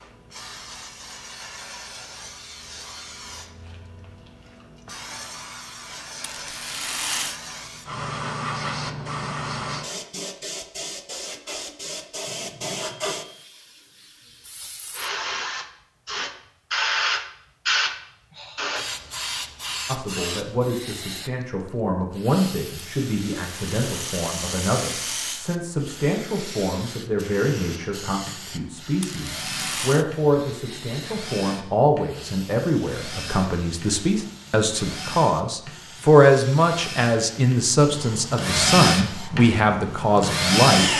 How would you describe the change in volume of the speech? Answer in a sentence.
The loudness of the speech goes up.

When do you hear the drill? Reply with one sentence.
You can hear the drill from 27.2 to 40.9 s.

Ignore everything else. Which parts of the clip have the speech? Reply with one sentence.
The speech can be heard from 19.9 to 40.9 s.